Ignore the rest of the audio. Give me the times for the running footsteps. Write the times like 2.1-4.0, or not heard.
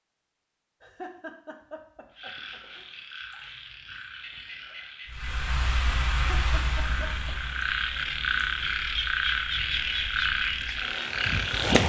not heard.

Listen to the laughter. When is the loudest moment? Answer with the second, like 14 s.
1 s.